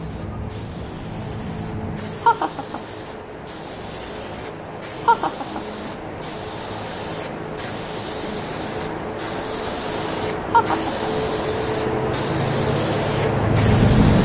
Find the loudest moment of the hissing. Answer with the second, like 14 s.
14 s.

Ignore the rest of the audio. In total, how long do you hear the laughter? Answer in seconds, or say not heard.
2 s.